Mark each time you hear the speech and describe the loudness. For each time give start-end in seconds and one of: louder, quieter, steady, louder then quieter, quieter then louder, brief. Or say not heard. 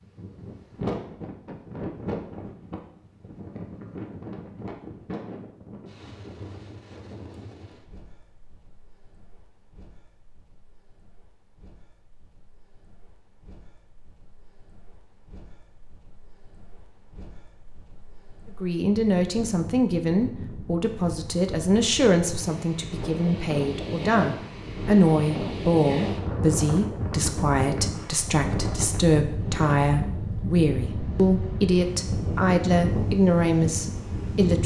18.6-34.6 steady.